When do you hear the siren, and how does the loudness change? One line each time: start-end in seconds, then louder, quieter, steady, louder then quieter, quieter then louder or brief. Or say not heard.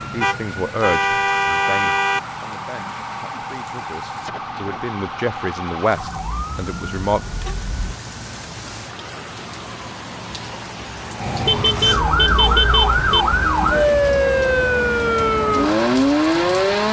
0.0-16.8 quieter then louder.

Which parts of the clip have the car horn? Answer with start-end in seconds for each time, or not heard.
0.2-2.2, 6.0-8.0, 11.4-13.2.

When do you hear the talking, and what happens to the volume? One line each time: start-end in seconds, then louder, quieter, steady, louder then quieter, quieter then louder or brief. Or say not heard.
0.0-7.2 quieter then louder.